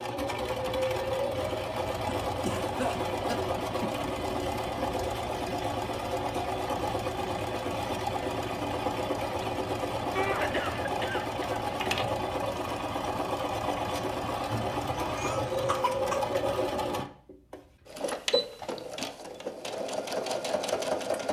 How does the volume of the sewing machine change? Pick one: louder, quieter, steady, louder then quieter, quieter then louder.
steady.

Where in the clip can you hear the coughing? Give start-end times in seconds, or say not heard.
2.0-4.1, 10.2-12.2, 14.5-16.2.